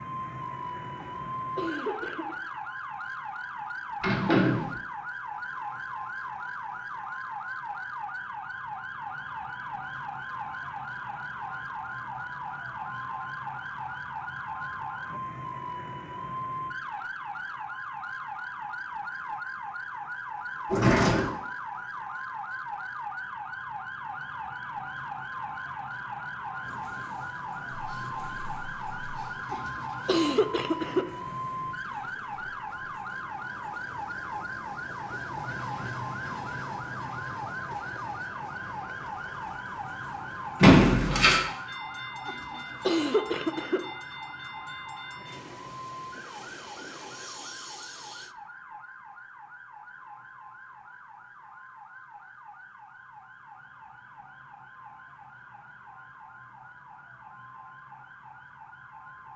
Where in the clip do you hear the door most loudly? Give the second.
41 s.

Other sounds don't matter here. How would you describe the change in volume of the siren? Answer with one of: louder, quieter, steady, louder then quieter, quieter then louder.
quieter.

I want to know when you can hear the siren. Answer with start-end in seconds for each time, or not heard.
0.0-59.3.